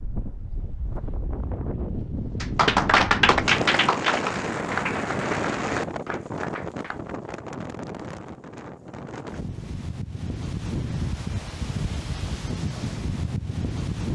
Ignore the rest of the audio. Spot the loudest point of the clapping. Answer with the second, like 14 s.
3 s.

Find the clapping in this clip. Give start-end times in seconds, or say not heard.
2.4-7.0.